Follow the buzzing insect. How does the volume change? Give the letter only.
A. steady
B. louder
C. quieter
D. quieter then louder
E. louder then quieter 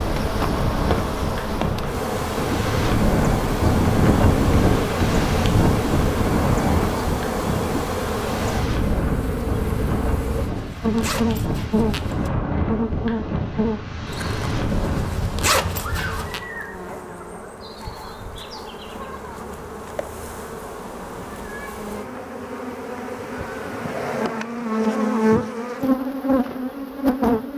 D.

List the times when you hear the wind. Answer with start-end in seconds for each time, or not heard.
0.0-15.3.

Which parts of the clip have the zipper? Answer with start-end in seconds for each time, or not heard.
10.4-12.3, 14.7-16.4.